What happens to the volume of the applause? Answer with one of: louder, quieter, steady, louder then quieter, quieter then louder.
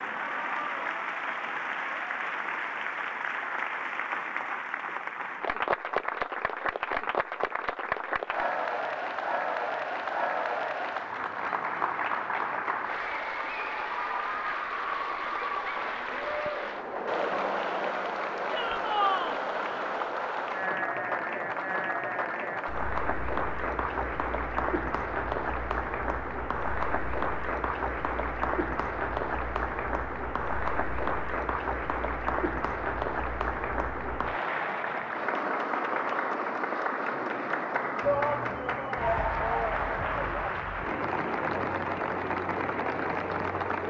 steady.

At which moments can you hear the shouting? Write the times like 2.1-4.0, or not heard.
18.4-19.4, 38.0-40.6.